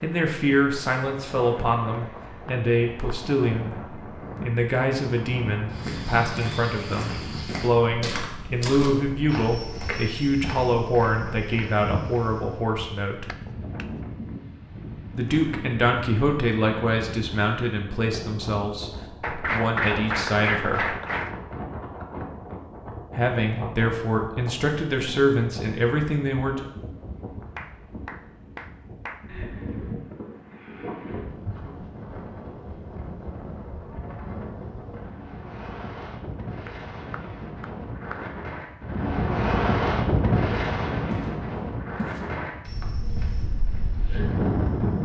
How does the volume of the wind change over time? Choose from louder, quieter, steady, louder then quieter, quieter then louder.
louder.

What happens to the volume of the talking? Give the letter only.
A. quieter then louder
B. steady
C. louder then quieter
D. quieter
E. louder
B.